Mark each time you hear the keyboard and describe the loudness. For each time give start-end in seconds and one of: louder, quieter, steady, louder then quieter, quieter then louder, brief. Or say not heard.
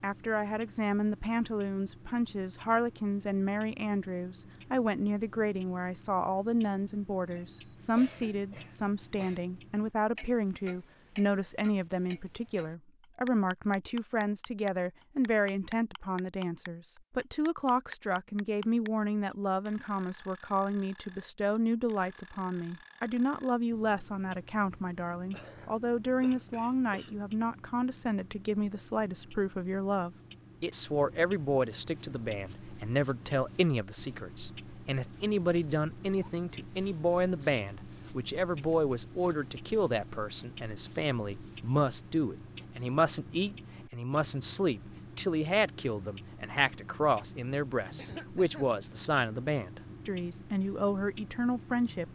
not heard.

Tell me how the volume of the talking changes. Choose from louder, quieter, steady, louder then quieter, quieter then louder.
steady.